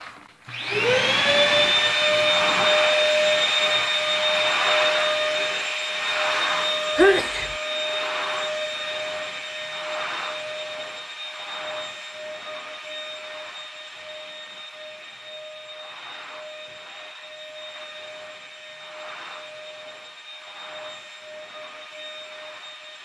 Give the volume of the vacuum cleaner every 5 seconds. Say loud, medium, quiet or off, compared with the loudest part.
loud, medium, quiet, quiet, quiet.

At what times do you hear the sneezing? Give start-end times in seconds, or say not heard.
7.0-7.5.